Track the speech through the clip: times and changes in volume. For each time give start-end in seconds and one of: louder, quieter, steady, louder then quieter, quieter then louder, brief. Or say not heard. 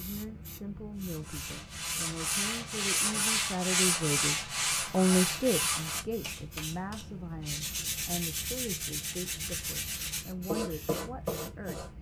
0.0-11.9 louder then quieter.